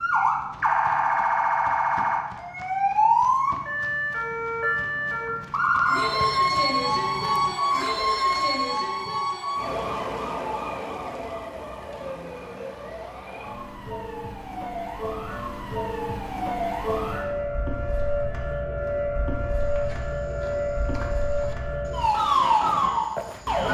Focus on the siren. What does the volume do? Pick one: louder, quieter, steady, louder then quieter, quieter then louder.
quieter then louder.